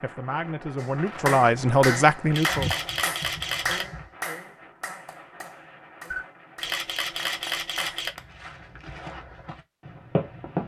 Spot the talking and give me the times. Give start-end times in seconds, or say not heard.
0.0-2.7.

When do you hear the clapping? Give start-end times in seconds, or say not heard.
0.8-8.2.